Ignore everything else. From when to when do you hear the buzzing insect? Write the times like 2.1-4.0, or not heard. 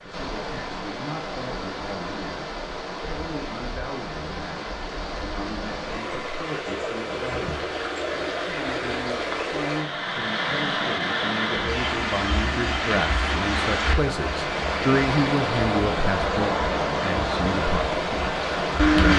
not heard.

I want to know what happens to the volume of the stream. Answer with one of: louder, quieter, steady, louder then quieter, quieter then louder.
louder.